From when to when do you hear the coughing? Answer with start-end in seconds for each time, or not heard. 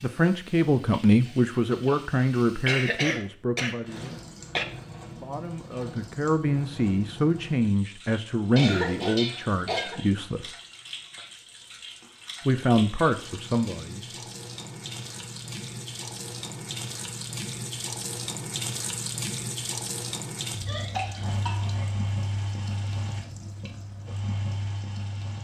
2.6-4.7, 8.6-10.0, 20.6-21.9.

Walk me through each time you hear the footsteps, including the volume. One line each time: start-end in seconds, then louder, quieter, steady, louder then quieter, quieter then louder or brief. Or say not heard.
not heard.